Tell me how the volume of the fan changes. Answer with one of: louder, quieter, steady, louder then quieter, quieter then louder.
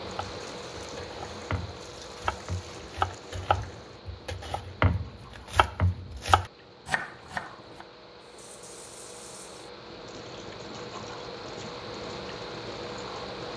quieter then louder.